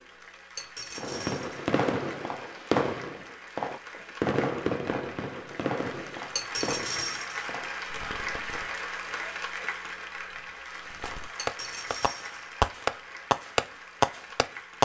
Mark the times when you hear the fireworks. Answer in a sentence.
You can hear the fireworks from 0.9 to 8.8 s and from 10.8 to 14.7 s.